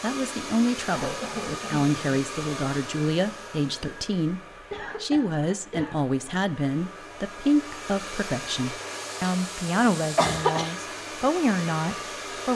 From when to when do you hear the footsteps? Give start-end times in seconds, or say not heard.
not heard.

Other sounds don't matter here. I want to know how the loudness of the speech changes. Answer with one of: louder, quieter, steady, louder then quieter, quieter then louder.
steady.